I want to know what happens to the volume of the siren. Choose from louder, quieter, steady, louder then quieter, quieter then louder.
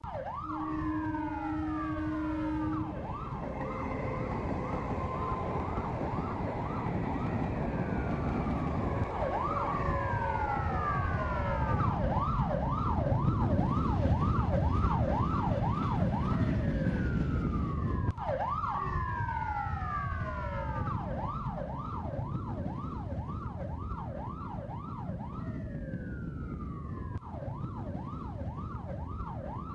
louder then quieter.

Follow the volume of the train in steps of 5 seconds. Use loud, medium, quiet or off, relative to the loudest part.
loud, loud, medium, medium, off, off.